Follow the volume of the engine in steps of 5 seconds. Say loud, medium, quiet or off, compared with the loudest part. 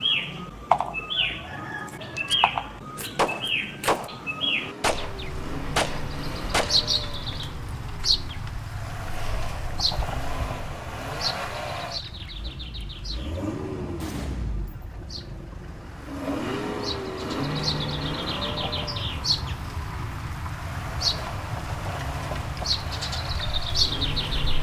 medium, medium, loud, loud, medium.